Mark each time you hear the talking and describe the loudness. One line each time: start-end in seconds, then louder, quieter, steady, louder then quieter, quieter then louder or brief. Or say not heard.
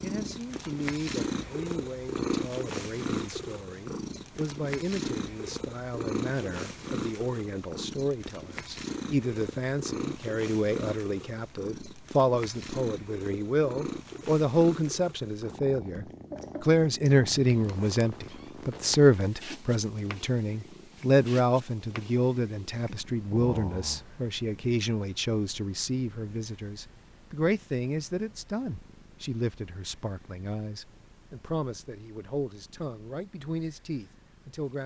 0.0-34.8 louder then quieter.